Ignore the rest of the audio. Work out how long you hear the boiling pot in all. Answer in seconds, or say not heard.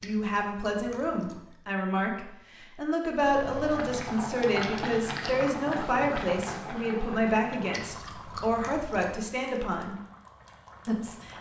8 s.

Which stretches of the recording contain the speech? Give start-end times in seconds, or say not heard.
0.0-9.9, 10.8-11.3.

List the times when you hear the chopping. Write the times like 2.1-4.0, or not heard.
not heard.